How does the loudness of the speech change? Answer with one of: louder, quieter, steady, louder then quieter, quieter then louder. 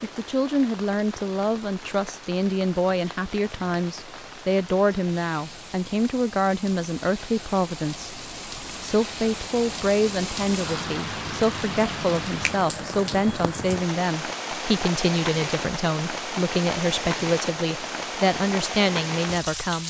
steady.